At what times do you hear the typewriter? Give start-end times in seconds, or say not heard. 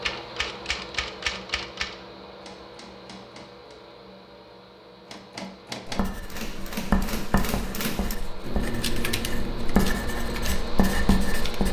0.0-3.8, 5.0-11.6.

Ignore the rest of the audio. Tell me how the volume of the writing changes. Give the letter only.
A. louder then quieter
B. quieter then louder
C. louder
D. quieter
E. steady
B.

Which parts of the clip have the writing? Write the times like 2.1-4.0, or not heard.
5.8-11.6.